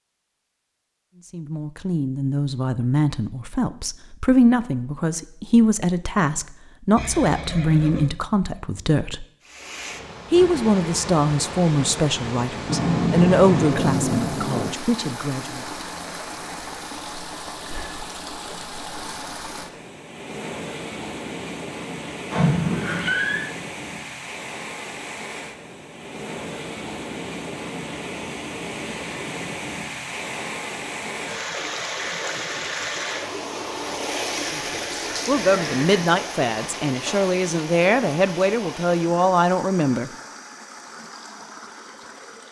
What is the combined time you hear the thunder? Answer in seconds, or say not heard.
2 s.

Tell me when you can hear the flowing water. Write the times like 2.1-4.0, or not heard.
9.4-42.4.